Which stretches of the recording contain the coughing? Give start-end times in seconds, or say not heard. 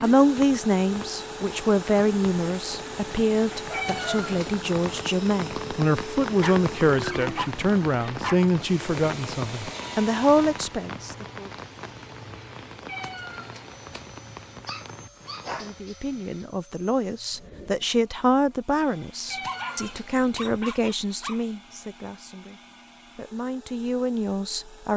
not heard.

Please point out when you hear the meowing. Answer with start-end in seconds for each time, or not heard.
3.7-4.5, 12.8-14.1, 19.2-20.5.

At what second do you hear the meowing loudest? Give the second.
4 s.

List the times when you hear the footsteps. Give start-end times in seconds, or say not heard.
not heard.